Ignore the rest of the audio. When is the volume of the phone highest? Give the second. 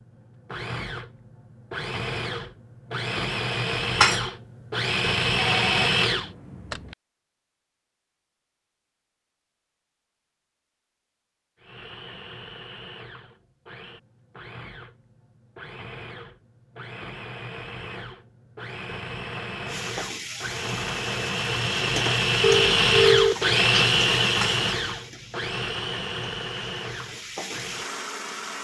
23 s.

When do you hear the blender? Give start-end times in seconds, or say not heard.
0.0-6.3, 11.6-28.5.